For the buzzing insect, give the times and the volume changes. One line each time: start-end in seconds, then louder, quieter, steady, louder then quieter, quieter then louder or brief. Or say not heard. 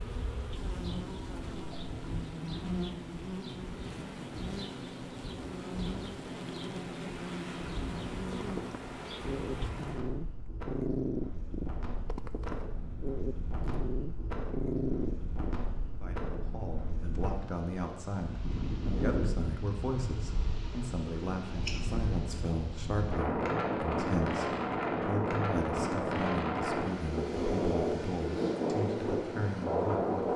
0.0-9.7 steady.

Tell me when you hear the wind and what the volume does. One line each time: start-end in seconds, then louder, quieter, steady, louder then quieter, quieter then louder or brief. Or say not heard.
0.0-30.3 louder.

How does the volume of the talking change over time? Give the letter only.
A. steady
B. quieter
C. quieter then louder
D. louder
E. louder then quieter
A.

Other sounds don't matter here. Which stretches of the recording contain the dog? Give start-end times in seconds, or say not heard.
8.3-15.6.